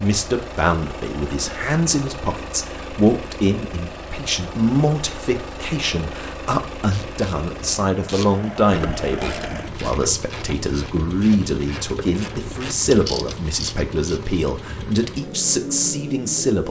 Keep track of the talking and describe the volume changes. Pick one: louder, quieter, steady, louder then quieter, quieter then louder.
steady.